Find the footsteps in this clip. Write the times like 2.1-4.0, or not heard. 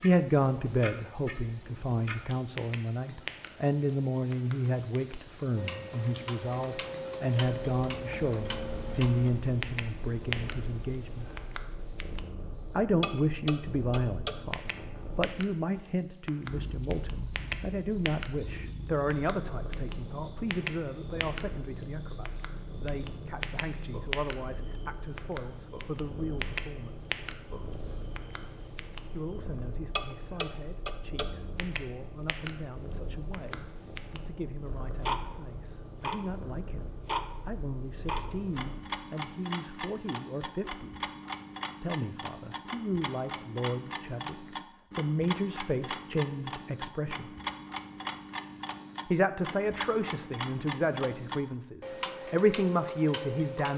not heard.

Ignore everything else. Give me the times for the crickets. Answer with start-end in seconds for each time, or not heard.
0.0-39.9.